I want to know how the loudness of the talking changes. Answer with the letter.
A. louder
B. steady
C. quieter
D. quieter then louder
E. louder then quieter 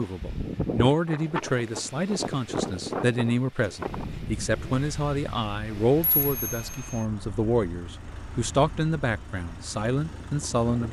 B.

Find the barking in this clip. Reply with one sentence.
The barking can't be heard in this clip.